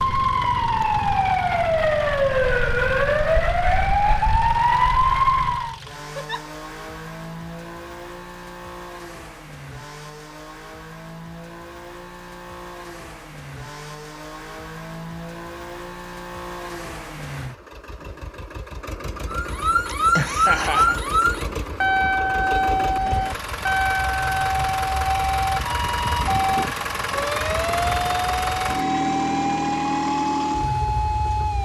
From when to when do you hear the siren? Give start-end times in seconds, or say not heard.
0.0-5.8, 19.3-31.6.